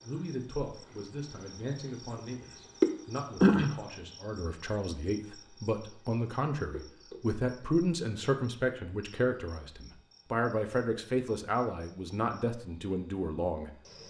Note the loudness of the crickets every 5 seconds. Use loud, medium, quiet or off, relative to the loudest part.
loud, quiet, quiet.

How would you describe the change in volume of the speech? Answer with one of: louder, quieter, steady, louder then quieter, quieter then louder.
louder.